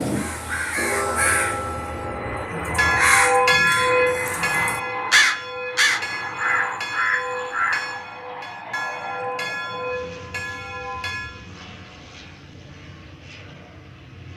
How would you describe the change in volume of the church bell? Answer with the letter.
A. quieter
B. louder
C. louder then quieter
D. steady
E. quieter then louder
C.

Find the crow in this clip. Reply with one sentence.
The crow can be heard from 0.0 to 8.0 s.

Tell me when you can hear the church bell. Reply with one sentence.
You can hear the church bell from 0.1 to 11.4 s.